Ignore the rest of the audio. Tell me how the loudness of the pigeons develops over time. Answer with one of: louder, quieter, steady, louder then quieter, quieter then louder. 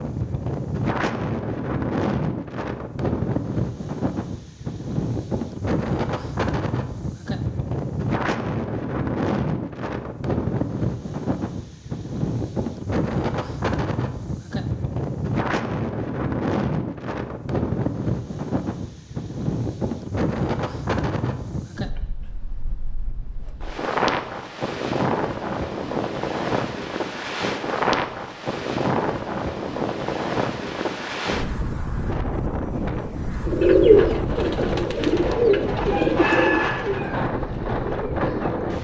quieter.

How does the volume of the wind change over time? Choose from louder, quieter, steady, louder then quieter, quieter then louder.
steady.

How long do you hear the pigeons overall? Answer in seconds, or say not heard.
5 s.